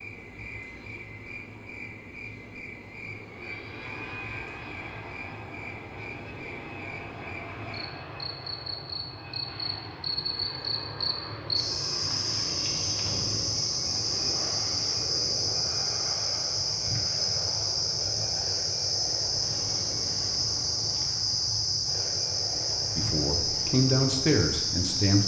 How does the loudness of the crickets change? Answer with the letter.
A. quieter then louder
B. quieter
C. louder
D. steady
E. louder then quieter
C.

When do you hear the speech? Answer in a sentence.
You can hear the speech from 22.9 to 25.2 s.